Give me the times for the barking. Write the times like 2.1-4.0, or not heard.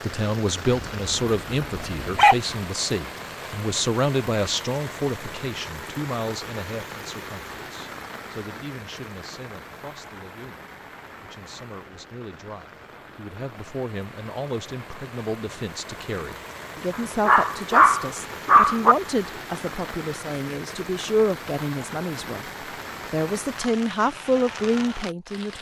0.7-2.4, 16.9-18.9.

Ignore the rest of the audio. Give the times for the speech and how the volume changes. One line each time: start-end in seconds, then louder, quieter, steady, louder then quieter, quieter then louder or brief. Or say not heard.
0.0-22.4 quieter then louder
23.1-25.5 brief.